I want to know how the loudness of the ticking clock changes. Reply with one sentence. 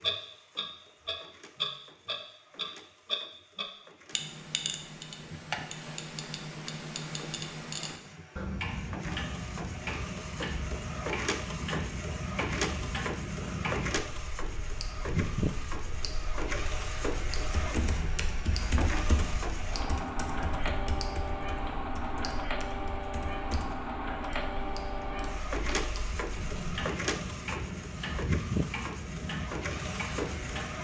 The volume of the ticking clock goes down, then up.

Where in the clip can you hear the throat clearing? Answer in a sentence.
The throat clearing can't be heard in this clip.